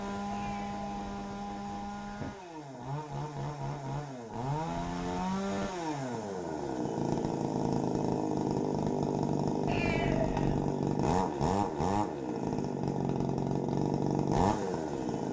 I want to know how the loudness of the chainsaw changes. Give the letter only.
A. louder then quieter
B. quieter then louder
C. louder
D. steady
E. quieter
C.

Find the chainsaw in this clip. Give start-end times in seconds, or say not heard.
0.0-15.2.